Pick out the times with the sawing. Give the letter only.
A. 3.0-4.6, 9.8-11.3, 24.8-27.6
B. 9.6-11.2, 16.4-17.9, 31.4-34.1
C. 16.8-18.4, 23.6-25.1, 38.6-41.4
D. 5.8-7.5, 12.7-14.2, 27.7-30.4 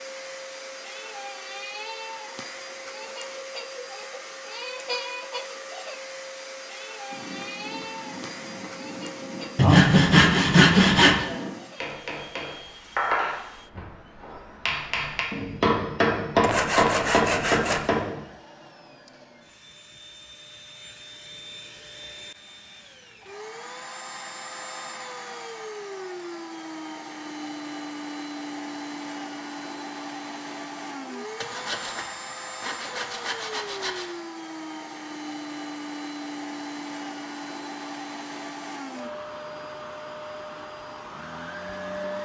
B.